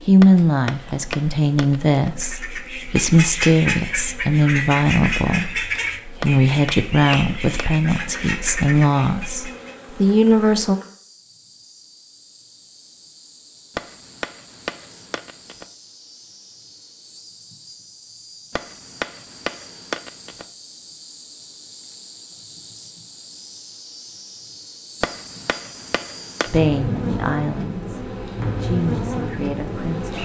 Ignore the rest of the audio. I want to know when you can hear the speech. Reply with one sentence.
You can hear the speech from 0.1 to 10.8 s and from 26.5 to 30.1 s.